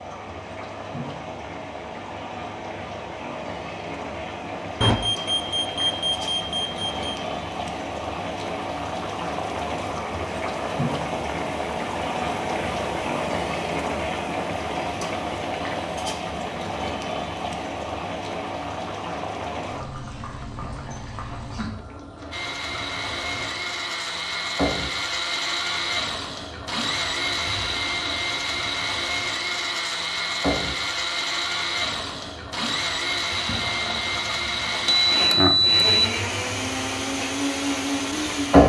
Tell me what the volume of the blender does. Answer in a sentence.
The loudness of the blender stays about the same.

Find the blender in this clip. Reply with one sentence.
The blender can be heard from 22.3 to 38.6 s.